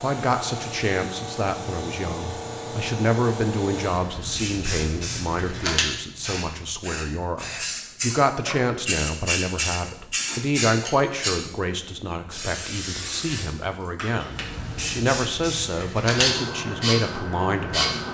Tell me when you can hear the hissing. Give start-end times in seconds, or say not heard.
0.0-18.0.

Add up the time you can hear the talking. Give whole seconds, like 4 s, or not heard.
18 s.